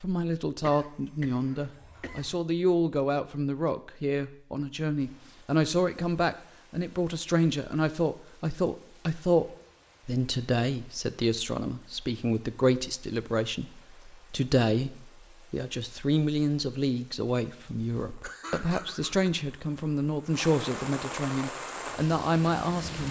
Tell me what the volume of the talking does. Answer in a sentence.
The volume of the talking stays about the same.